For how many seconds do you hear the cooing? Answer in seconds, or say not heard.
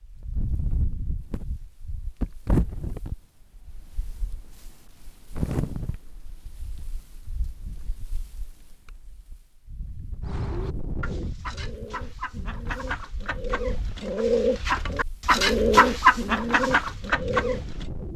8 s.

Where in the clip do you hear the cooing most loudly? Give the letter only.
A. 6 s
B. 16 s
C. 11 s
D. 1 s
B.